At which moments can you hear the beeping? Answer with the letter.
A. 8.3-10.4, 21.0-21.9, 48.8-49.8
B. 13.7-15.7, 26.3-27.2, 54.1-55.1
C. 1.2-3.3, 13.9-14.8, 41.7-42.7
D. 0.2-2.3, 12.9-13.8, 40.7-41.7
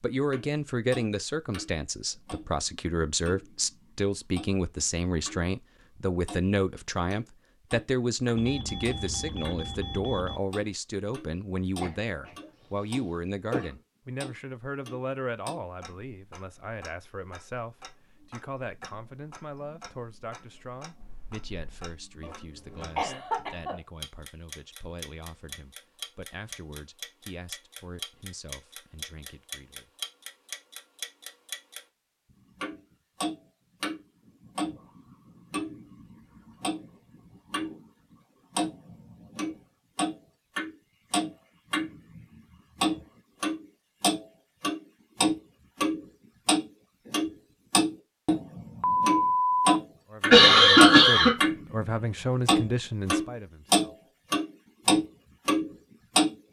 A.